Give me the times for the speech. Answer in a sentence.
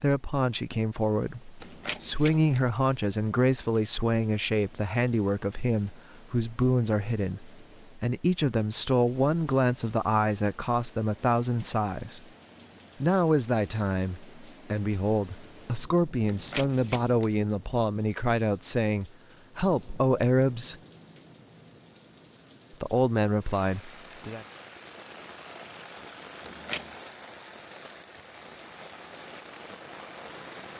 The speech can be heard from 0.0 to 12.2 s, from 13.0 to 20.8 s and from 22.8 to 24.4 s.